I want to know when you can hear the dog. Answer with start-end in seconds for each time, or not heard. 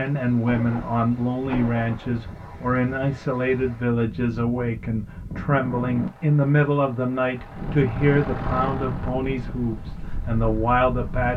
not heard.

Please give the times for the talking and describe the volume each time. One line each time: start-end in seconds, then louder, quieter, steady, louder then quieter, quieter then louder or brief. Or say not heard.
0.0-11.3 steady.